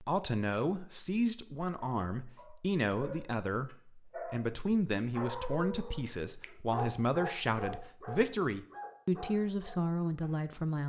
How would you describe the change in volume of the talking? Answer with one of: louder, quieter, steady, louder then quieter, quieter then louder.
steady.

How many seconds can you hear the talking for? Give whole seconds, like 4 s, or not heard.
11 s.